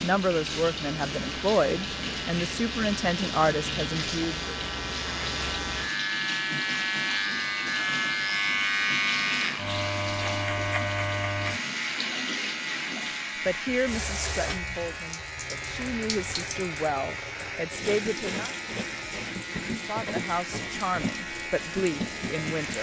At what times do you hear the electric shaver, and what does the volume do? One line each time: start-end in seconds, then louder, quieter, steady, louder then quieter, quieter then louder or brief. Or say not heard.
0.2-22.7 louder then quieter.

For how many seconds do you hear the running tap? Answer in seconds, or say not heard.
23 s.